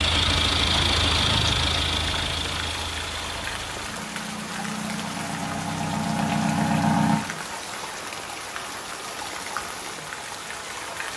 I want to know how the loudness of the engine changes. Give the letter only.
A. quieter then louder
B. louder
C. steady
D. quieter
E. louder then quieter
A.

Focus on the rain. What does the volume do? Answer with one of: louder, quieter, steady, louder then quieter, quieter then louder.
steady.